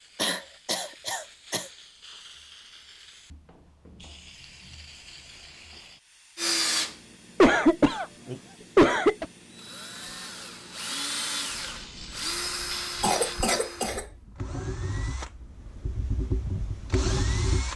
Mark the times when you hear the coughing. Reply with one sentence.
The coughing can be heard from 0.1 to 1.6 s, from 7.4 to 9.2 s and from 13.0 to 14.1 s.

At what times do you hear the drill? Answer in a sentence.
You can hear the drill from 6.3 to 7.0 s and from 9.6 to 17.7 s.